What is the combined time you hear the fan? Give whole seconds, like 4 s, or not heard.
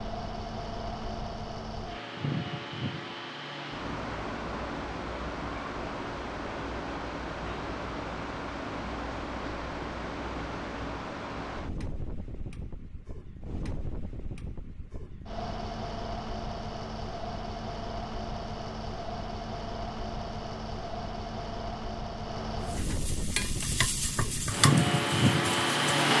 26 s.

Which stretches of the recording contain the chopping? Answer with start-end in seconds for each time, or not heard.
not heard.